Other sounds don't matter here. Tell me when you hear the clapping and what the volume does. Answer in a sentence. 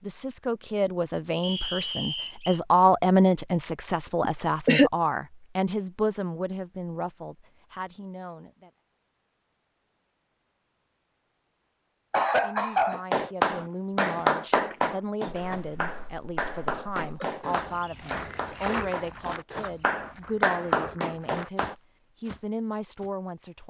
You can hear the clapping from 12.9 to 21.8 s, getting quieter then louder.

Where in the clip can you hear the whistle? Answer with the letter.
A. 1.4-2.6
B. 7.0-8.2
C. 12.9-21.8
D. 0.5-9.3
A.